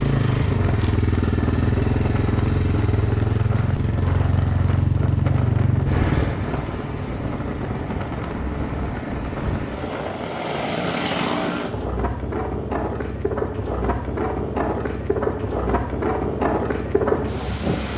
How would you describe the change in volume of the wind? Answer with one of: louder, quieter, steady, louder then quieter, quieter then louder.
louder.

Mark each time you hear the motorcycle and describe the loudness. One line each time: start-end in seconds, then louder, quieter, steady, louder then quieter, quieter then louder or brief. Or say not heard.
0.0-17.9 quieter.